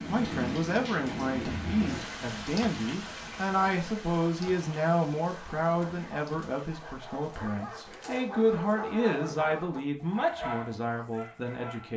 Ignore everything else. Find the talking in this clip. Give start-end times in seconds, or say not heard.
0.1-11.9.